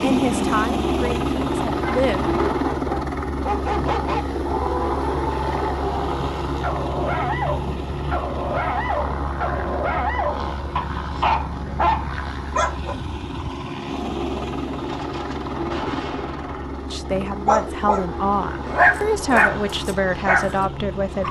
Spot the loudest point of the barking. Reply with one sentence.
The volume of the barking peaks at 19 seconds.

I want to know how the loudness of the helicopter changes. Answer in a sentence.
The loudness of the helicopter goes down.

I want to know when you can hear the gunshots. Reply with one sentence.
You can hear the gunshots from 14.8 to 16.8 s.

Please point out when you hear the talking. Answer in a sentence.
The talking can be heard from 0.0 to 2.2 s and from 16.9 to 21.2 s.